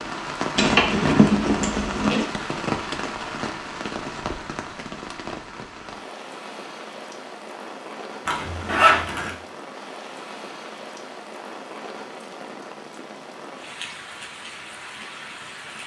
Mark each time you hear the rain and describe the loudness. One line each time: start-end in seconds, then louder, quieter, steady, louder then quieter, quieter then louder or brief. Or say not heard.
0.0-15.8 quieter.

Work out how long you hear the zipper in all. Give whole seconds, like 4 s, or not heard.
3 s.